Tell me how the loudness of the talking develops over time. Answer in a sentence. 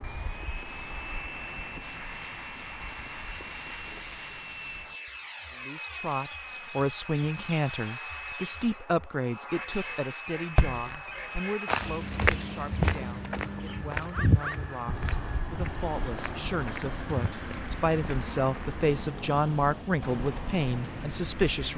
The loudness of the talking goes down, then up.